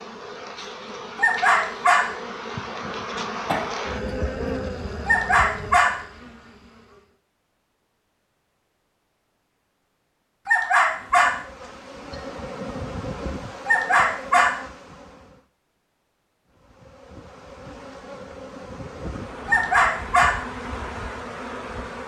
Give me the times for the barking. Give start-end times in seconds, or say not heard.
1.1-2.1, 5.0-6.0, 10.4-11.3, 13.7-14.6, 19.4-20.4.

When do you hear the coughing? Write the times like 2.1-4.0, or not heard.
3.5-4.5.